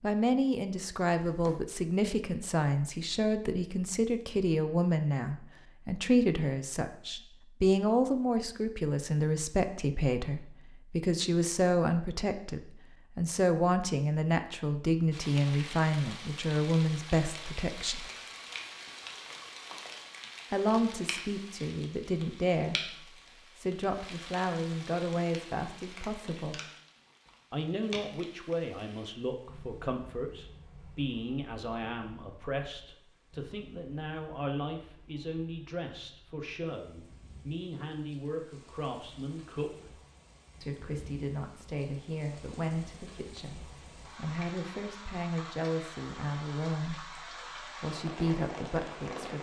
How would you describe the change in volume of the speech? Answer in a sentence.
The loudness of the speech goes down.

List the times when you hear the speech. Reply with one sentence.
You can hear the speech from 0.0 to 18.1 s, from 20.5 to 26.6 s, from 27.5 to 39.7 s and from 40.6 to 49.3 s.